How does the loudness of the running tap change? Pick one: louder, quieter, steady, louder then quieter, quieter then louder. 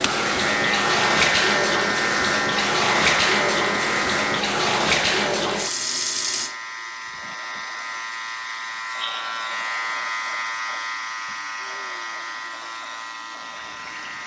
quieter.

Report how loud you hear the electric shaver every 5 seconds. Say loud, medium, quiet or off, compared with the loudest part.
loud, medium, medium.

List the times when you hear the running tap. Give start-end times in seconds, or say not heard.
0.0-14.2.